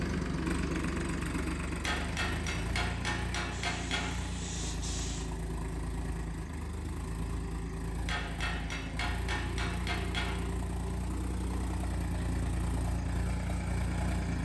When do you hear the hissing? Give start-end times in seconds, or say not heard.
3.5-5.2.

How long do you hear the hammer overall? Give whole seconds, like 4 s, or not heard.
5 s.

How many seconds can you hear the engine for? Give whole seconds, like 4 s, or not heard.
14 s.